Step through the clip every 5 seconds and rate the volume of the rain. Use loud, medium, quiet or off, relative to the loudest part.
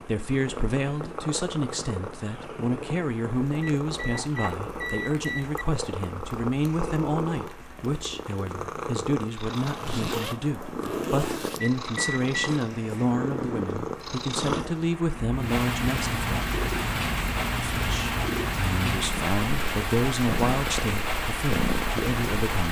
quiet, quiet, quiet, loud, loud.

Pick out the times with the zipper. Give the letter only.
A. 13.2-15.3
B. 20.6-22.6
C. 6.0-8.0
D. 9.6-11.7
D.